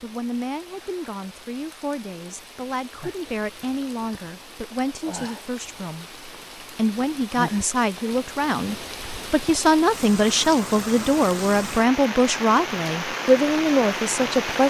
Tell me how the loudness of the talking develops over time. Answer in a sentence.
The volume of the talking goes up.